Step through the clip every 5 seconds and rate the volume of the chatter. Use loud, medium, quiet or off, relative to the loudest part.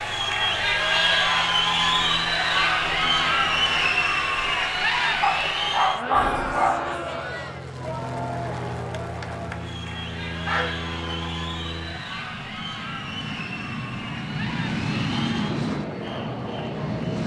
loud, medium, quiet, quiet.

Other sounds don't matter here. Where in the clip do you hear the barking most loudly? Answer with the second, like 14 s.
6 s.